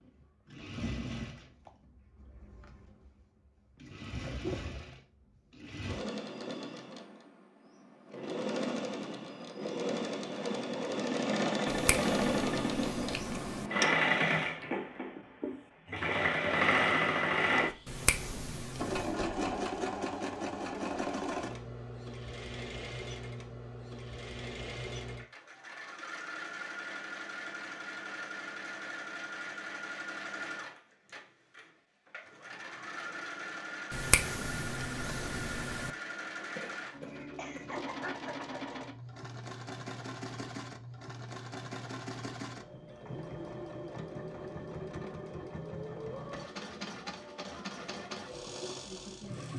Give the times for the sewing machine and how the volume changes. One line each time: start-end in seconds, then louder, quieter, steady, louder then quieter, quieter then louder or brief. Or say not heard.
0.0-49.5 louder then quieter.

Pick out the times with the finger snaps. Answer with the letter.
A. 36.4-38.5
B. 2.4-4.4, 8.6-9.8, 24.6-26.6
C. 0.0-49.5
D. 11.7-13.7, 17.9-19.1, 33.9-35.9
D.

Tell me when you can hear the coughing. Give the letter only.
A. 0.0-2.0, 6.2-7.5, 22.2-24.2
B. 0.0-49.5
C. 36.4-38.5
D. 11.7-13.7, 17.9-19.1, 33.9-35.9
C.